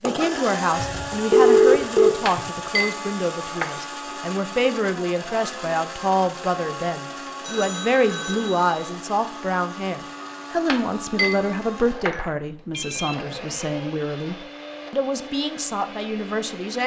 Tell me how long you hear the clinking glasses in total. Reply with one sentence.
You can hear the clinking glasses for 3 seconds altogether.